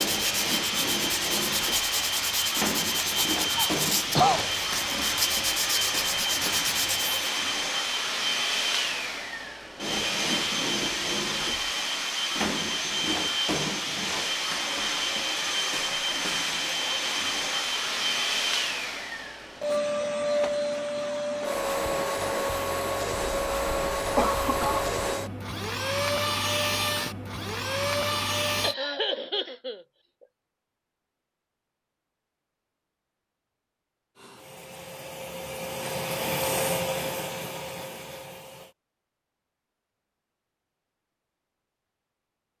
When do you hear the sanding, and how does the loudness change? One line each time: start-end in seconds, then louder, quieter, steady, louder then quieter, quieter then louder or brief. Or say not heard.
0.0-7.3 steady.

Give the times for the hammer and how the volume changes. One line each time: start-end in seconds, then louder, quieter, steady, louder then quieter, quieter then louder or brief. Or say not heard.
not heard.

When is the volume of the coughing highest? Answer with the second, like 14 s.
4 s.